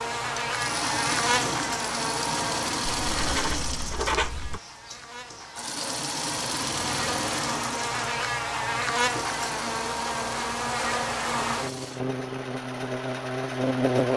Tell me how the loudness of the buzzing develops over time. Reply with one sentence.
The volume of the buzzing goes down, then up.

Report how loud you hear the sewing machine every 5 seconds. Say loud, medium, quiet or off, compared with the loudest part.
loud, loud, medium.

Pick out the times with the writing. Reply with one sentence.
You can hear the writing from 2.9 to 4.6 s.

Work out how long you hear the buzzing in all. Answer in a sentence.
You can hear the buzzing for 14 seconds altogether.